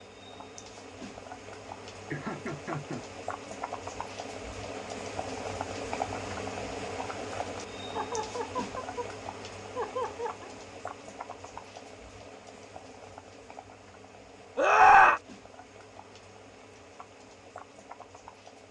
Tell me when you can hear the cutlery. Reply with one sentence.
You can't hear the cutlery here.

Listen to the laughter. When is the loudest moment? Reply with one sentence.
The loudest moment of the laughter is at 15 seconds.